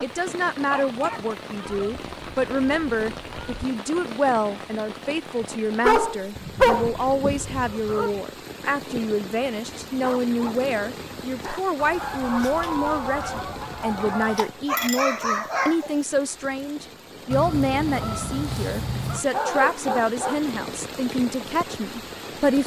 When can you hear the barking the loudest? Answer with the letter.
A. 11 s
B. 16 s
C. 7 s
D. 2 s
C.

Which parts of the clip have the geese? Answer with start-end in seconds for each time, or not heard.
1.6-3.6, 6.3-8.2, 11.8-14.5, 17.3-19.2.